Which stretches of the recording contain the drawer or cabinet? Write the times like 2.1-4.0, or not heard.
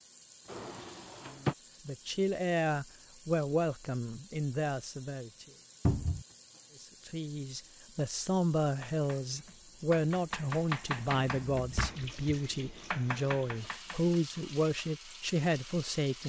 0.5-1.6, 5.8-6.2, 11.0-12.1.